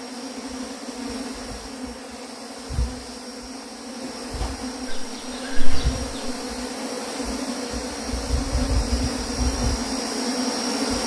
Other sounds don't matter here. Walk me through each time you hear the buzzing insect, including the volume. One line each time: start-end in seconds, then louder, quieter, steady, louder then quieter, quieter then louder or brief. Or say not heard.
0.0-11.0 louder.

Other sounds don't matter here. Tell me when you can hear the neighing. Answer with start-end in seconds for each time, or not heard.
4.8-6.3.